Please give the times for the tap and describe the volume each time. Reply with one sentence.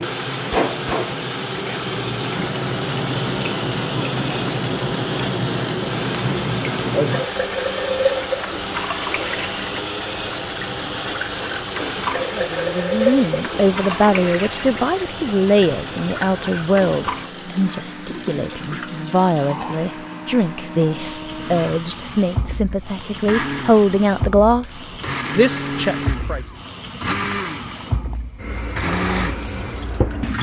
The tap can be heard from 0.0 to 30.3 s, getting quieter.